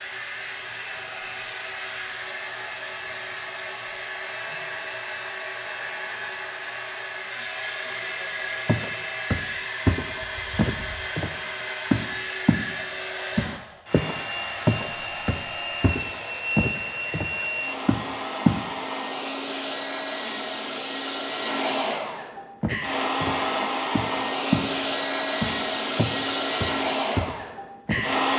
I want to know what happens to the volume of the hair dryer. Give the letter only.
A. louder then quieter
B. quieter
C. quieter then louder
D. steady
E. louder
E.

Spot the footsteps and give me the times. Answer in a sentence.
You can hear the footsteps from 8.7 to 12.7 s, from 13.3 to 18.6 s, from 22.6 to 24.7 s and from 25.4 to 28.1 s.